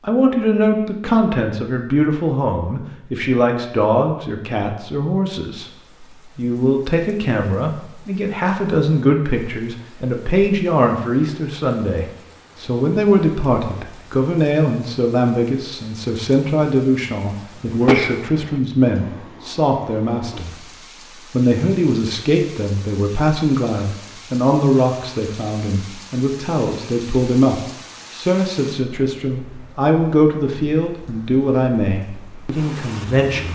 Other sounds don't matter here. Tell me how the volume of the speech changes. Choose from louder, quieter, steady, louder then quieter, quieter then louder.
steady.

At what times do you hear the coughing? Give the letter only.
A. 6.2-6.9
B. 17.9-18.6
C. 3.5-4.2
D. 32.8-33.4
B.